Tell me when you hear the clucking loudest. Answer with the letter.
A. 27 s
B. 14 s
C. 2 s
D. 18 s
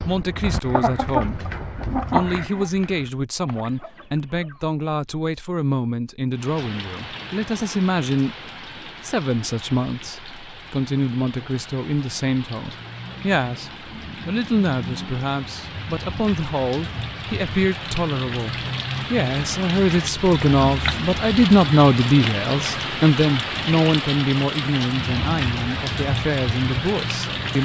C.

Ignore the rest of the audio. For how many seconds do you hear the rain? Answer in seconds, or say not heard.
21 s.